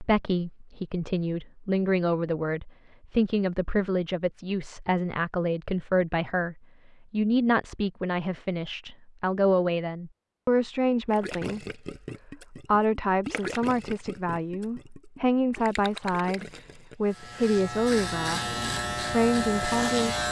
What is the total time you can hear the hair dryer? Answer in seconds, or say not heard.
not heard.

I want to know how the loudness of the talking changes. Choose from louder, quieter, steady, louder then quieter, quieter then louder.
steady.